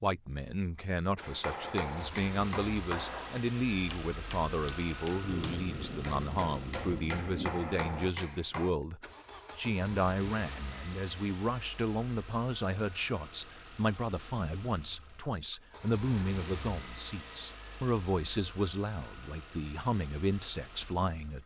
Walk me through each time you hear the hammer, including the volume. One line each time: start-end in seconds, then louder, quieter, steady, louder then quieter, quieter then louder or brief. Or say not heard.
1.2-8.7 quieter then louder.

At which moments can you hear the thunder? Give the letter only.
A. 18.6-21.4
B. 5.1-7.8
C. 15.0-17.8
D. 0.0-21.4
B.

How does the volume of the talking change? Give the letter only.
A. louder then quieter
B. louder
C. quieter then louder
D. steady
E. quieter
D.